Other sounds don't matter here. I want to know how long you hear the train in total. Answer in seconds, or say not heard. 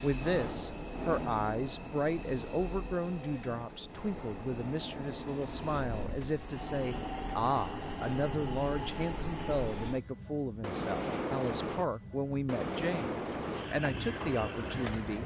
15 s.